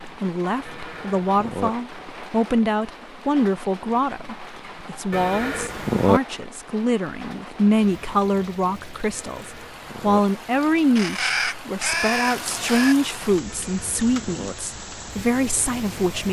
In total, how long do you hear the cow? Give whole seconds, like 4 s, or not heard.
4 s.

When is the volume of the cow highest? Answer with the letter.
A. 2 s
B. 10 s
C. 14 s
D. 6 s
D.